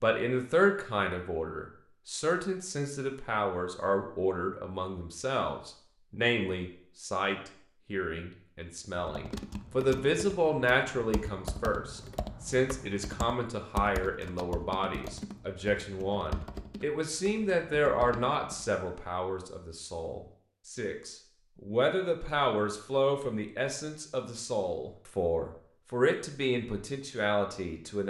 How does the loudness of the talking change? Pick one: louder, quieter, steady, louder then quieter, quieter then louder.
steady.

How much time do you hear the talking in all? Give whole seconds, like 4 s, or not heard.
28 s.